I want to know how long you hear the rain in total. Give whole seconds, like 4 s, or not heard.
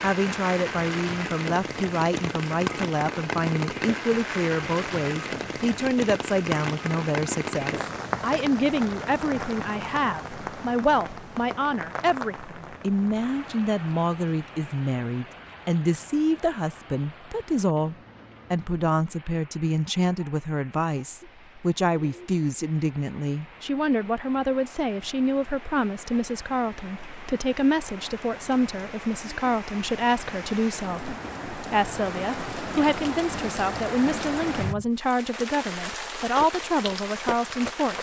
38 s.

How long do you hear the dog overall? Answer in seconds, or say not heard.
not heard.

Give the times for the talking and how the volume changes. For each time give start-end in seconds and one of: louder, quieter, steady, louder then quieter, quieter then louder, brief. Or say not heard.
0.0-37.9 steady.